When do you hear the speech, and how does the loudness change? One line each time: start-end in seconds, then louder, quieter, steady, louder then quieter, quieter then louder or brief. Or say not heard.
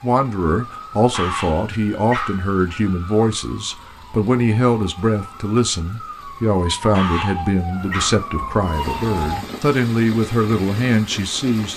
0.0-11.7 steady.